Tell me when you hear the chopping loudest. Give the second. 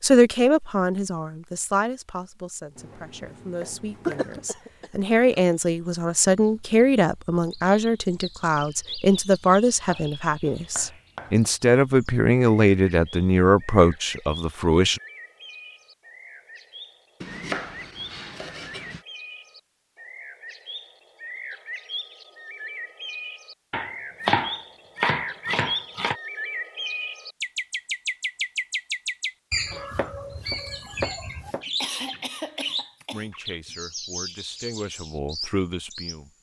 24 s.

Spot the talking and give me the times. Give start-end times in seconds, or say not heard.
0.0-15.0, 33.1-36.3.